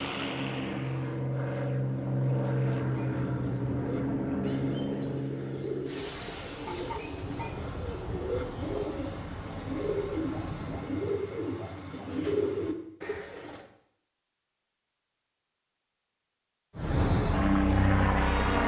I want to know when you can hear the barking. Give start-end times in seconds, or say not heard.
not heard.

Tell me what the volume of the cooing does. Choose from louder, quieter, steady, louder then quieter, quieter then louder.
louder.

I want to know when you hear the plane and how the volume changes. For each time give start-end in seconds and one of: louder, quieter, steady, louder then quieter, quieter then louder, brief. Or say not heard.
0.0-11.0 quieter
16.8-18.6 brief.